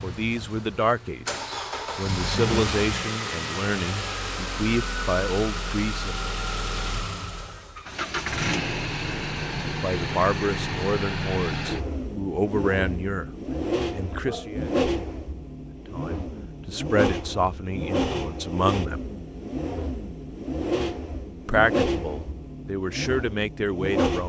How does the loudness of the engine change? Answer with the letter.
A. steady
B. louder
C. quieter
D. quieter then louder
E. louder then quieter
A.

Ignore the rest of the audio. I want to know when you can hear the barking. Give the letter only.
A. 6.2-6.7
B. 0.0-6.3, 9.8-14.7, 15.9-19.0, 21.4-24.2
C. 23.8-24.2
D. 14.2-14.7
D.